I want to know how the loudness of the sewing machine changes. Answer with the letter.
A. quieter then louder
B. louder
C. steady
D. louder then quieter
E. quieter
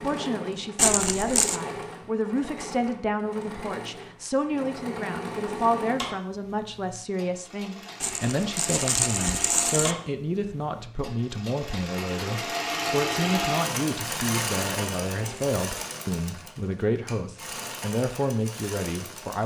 D.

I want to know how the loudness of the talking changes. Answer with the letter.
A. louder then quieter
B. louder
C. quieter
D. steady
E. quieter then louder
D.